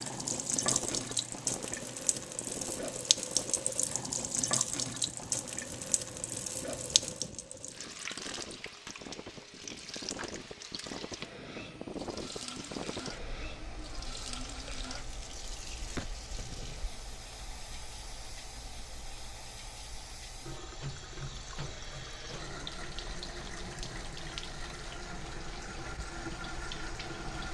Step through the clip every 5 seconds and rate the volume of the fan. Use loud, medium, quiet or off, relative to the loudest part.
loud, medium, loud, medium, medium, medium.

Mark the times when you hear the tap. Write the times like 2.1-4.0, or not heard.
0.0-27.4.